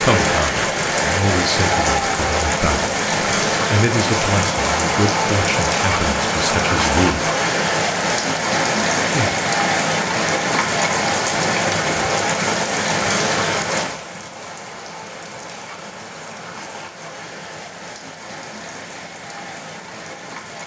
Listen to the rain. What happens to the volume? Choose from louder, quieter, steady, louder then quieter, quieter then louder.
quieter.